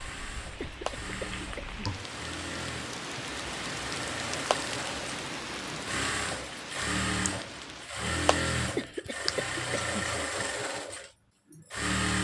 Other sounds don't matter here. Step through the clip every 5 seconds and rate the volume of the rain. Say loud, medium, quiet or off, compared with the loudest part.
loud, loud, off.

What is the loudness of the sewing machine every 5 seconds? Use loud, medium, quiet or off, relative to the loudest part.
medium, loud, loud.